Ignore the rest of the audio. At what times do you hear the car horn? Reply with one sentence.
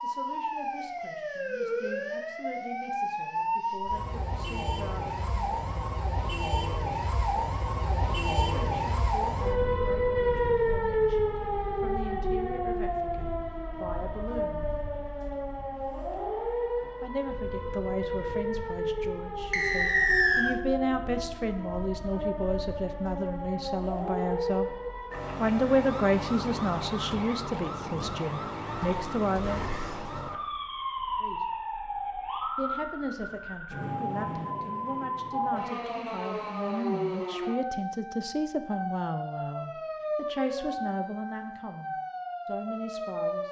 The car horn can't be heard in this clip.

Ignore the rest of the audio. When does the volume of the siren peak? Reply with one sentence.
The loudest moment of the siren is at 11 seconds.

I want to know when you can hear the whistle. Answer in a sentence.
You can hear the whistle from 19.5 to 20.6 s.